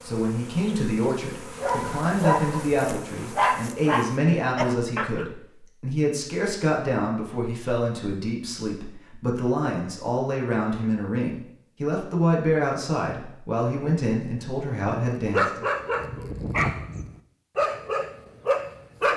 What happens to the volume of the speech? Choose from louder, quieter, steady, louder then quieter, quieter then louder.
steady.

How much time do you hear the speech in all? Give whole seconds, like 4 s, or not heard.
16 s.